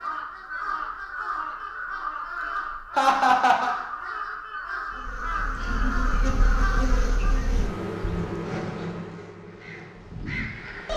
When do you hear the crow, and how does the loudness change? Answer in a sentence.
The crow can be heard from 0.0 to 7.4 s, at a steady volume; and briefly from 9.3 to 10.9 s.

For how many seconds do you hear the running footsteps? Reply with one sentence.
The running footsteps can't be heard in this clip.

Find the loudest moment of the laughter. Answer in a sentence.
The volume of the laughter peaks at 3 seconds.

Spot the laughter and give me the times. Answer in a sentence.
The laughter can be heard from 3.0 to 3.8 s and from 5.5 to 6.2 s.